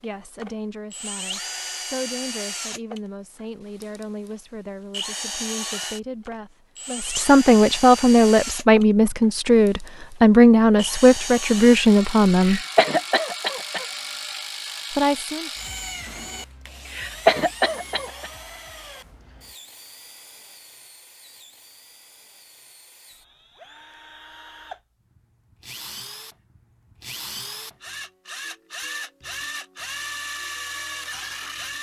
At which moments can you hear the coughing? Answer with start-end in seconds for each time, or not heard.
12.3-13.8, 16.9-18.3.